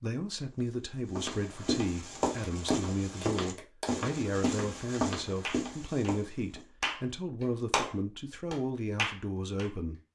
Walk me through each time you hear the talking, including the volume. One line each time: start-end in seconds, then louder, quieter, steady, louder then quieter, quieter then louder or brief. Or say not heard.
0.0-10.0 steady.